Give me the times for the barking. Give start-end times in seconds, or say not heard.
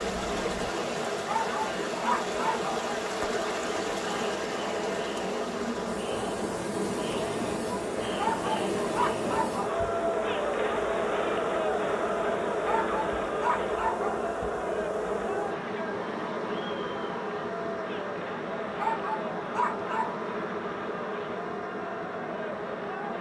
1.2-2.7, 8.0-9.7, 12.5-14.2, 18.6-20.1.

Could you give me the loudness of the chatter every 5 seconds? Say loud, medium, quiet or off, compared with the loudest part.
medium, loud, loud, medium, medium.